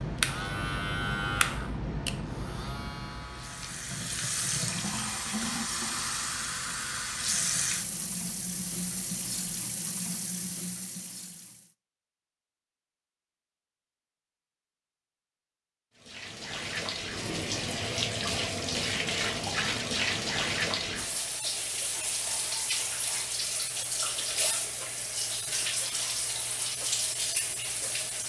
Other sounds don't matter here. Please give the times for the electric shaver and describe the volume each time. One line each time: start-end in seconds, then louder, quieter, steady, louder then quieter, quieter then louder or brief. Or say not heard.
0.0-9.7 quieter.